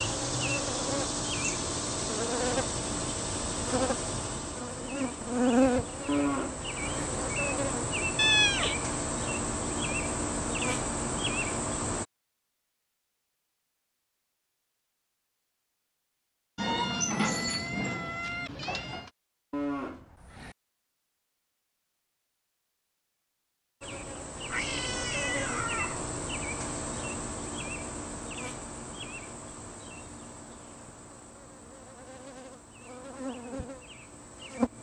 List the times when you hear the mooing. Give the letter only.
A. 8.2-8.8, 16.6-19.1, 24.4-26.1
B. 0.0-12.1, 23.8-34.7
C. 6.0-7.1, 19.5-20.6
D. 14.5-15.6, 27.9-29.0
C.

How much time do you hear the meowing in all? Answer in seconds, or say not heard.
5 s.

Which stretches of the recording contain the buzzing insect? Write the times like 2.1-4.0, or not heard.
0.0-12.1, 23.8-34.7.